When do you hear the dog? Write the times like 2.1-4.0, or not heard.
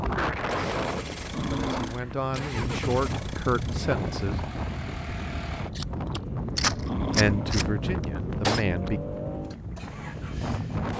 1.3-2.1, 6.8-7.6.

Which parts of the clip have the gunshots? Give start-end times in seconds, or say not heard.
5.8-8.7.